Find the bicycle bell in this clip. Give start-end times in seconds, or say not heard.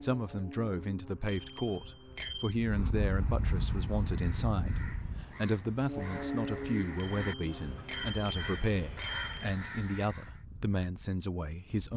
1.2-2.5, 7.0-9.5.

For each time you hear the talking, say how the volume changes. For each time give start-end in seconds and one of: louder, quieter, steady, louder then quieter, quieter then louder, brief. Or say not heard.
0.0-11.9 steady.